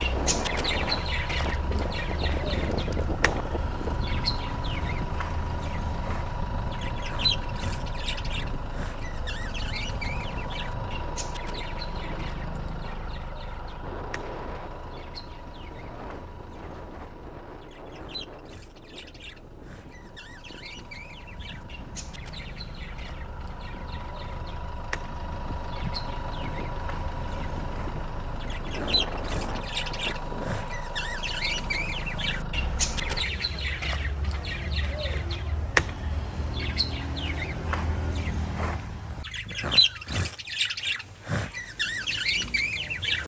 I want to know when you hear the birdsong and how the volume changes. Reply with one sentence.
You can hear the birdsong from 0.0 to 43.2 s, getting quieter then louder.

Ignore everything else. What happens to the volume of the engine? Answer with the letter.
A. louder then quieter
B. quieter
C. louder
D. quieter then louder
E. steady
D.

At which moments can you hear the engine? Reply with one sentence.
You can hear the engine from 0.0 to 33.3 s.